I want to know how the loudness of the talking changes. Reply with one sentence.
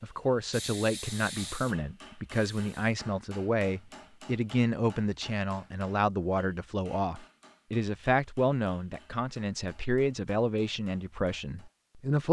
The volume of the talking stays about the same.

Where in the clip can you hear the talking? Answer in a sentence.
The talking can be heard from 0.0 to 12.2 s.